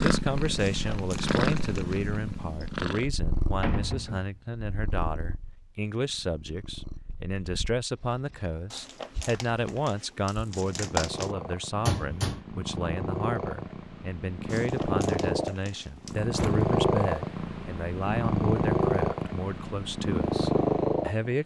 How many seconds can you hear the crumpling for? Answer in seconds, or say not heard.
6 s.